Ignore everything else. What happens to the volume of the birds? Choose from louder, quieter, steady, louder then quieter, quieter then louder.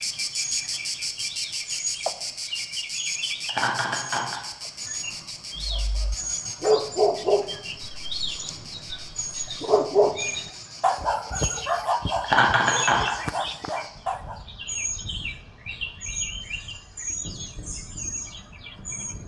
steady.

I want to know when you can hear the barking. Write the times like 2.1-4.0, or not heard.
5.5-14.4.